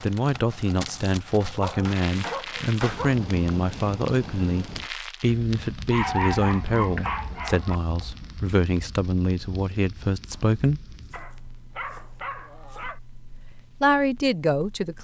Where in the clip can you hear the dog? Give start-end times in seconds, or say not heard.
1.4-3.2, 5.9-7.8, 11.1-13.0.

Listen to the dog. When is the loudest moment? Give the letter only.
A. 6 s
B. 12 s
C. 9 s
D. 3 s
A.